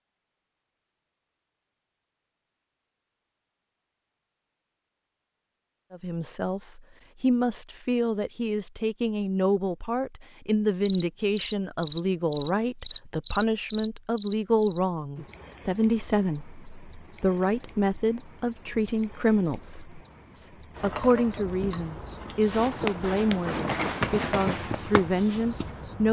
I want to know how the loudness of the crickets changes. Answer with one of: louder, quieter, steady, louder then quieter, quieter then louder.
steady.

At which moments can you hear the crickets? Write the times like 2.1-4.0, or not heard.
10.8-26.0.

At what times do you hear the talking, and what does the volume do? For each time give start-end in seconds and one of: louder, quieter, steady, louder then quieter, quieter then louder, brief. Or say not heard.
5.9-26.0 steady.